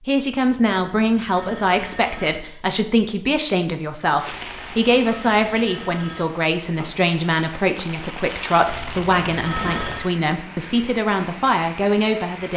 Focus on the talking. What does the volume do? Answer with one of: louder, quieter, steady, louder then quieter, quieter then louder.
steady.